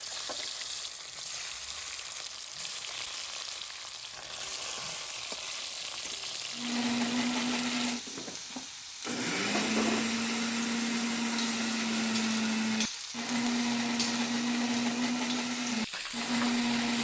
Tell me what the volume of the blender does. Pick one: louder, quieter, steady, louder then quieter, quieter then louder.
steady.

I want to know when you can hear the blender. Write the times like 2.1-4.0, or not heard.
6.5-16.9.